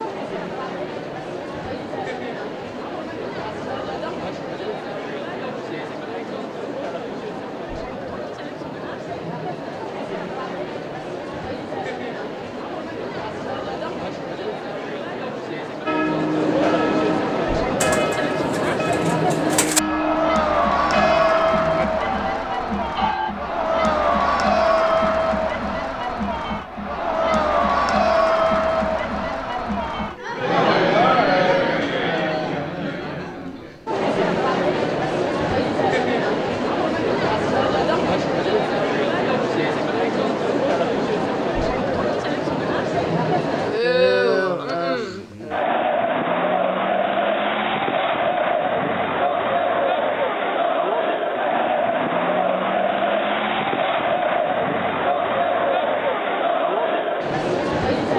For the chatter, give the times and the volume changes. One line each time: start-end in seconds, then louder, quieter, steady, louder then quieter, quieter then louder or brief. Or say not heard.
0.0-58.1 louder.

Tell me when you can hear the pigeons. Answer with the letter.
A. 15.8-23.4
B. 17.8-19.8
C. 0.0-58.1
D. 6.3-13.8
B.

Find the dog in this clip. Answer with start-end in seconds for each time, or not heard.
not heard.